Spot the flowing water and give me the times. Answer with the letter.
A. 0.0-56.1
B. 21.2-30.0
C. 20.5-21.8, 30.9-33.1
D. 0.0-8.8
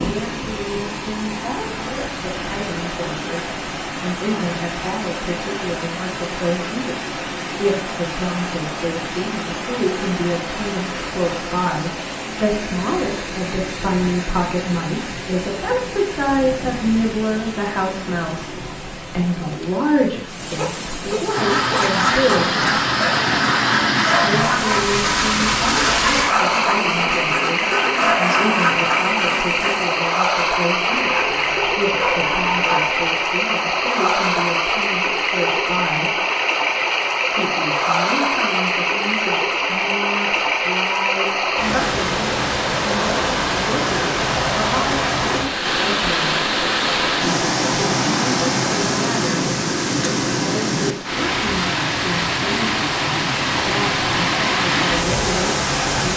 A.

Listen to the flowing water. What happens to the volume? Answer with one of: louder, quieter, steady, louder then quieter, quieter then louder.
louder.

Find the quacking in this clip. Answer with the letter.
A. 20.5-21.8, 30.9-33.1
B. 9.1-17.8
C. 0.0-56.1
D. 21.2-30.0
D.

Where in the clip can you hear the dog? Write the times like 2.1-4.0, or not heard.
20.5-21.8, 30.9-33.1.